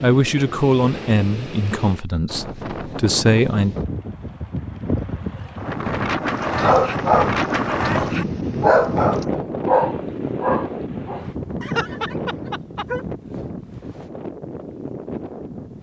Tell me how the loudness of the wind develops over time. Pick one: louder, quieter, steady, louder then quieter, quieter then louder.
louder then quieter.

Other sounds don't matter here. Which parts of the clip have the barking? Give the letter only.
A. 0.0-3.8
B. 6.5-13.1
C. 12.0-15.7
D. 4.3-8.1
B.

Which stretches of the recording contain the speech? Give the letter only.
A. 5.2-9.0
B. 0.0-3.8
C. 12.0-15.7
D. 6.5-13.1
B.